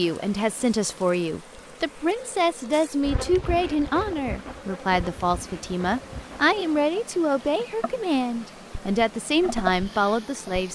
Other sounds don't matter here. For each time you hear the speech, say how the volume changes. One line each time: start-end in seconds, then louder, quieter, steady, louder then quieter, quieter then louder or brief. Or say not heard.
0.0-10.7 steady.